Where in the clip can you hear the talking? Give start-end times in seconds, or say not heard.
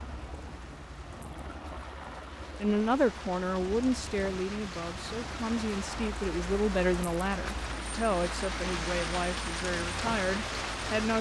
2.6-11.1.